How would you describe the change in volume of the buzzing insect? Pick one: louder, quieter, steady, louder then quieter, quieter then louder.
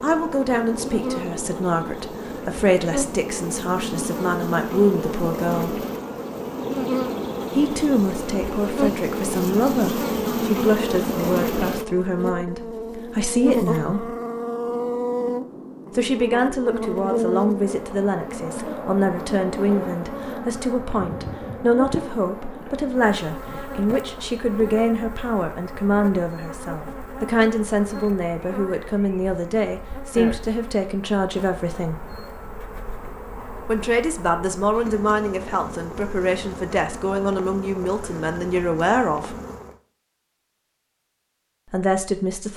quieter.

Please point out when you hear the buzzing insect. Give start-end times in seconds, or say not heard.
0.0-39.8.